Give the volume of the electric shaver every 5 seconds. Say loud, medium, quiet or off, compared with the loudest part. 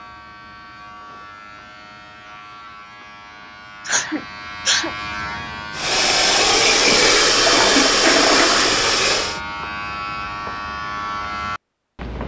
medium, loud, loud.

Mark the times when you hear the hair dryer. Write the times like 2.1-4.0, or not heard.
5.7-9.4.